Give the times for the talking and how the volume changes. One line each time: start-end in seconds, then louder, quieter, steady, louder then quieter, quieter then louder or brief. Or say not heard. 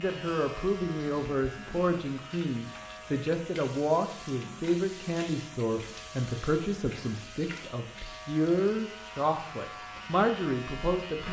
0.0-11.2 steady.